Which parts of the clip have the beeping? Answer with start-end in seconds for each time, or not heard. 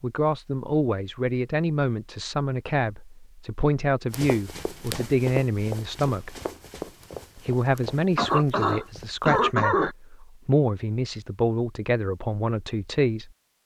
not heard.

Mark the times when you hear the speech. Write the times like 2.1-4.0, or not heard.
0.0-6.4, 7.3-13.6.